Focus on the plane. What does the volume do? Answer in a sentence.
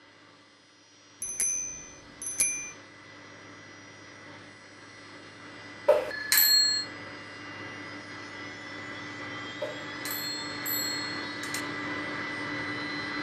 The volume of the plane goes up.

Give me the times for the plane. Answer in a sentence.
You can hear the plane from 0.0 to 13.1 s.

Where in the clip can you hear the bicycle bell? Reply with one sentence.
The bicycle bell can be heard from 1.2 to 2.8 s, from 5.8 to 6.8 s and from 9.6 to 11.7 s.